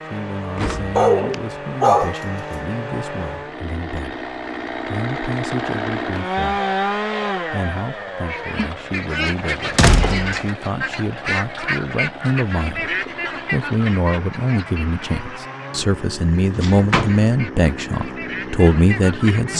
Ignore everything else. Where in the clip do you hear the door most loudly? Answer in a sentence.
The volume of the door peaks at 10 seconds.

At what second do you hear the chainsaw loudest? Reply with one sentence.
The loudest moment of the chainsaw is at 7 seconds.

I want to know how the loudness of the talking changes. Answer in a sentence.
The loudness of the talking goes up.